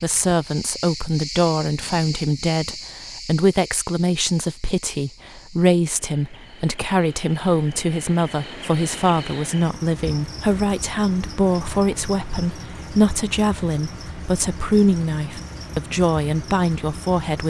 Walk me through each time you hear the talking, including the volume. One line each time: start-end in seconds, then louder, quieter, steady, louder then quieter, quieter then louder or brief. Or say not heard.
0.0-17.4 steady.